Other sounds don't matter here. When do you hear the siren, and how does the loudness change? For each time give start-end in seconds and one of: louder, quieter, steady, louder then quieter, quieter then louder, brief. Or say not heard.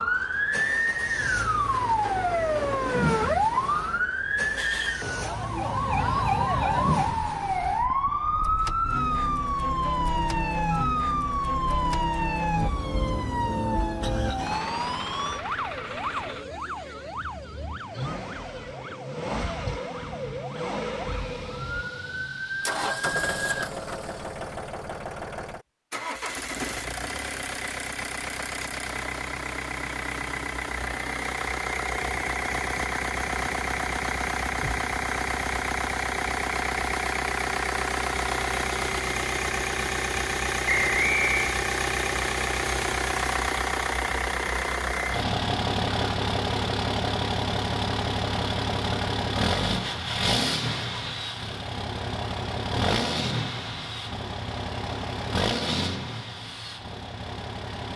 0.0-23.7 quieter.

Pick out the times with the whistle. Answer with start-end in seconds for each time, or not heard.
40.6-41.5.